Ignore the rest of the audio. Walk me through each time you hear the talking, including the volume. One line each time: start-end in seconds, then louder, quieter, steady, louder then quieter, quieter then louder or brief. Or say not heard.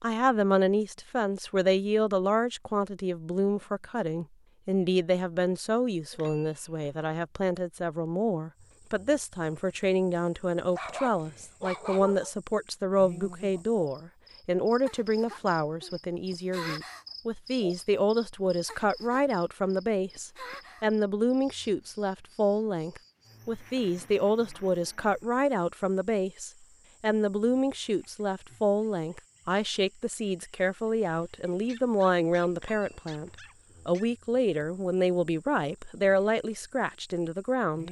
0.0-37.8 steady.